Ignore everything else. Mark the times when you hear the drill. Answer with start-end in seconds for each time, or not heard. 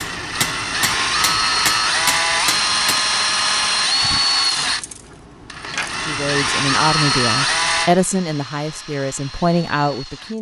0.0-10.3.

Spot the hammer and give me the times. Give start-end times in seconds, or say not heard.
0.0-3.0.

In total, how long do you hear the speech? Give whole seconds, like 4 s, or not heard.
4 s.